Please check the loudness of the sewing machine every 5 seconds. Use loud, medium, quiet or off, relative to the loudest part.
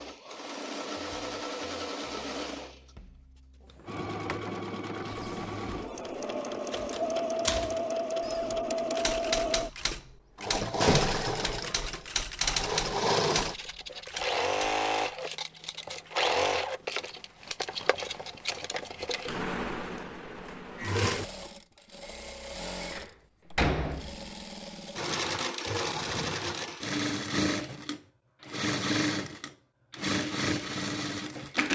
medium, loud, loud, loud, medium, loud, loud.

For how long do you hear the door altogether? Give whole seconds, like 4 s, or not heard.
3 s.